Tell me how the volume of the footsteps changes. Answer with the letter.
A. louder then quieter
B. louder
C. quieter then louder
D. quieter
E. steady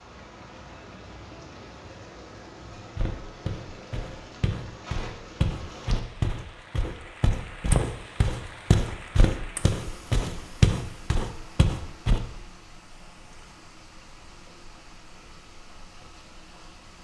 B.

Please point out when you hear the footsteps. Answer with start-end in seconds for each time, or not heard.
2.8-12.2.